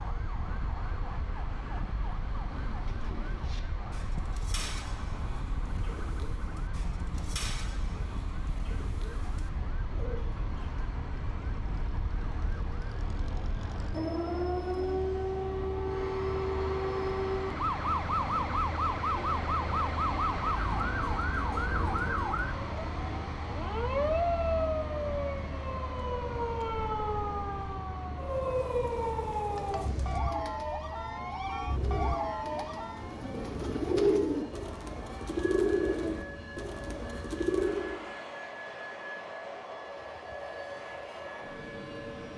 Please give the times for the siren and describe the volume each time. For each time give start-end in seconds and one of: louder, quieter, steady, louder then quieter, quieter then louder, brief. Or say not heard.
0.0-42.3 louder then quieter.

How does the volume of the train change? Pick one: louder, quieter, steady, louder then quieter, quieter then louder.
louder then quieter.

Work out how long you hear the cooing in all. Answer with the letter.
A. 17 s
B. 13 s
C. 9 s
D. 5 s
A.